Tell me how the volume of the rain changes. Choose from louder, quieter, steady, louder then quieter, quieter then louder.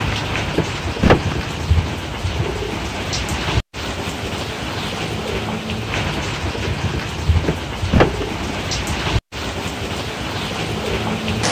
steady.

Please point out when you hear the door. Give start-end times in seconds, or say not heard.
0.1-1.6, 7.0-8.6.